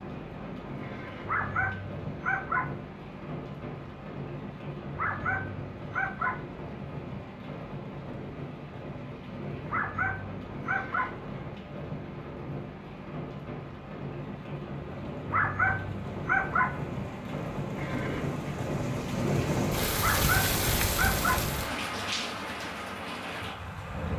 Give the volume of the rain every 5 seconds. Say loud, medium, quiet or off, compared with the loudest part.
medium, medium, medium, loud, loud.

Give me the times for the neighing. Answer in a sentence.
You can hear the neighing from 0.8 to 1.4 s, from 10.6 to 11.3 s and from 17.8 to 18.4 s.